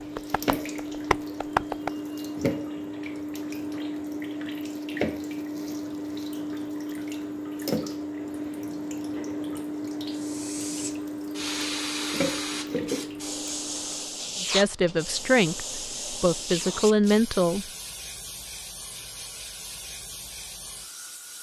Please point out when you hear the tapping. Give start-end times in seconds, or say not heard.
0.0-1.9.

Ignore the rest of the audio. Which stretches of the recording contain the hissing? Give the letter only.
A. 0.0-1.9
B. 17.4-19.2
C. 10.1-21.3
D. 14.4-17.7
C.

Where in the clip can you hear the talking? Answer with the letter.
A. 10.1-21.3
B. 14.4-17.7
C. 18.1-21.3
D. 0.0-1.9
B.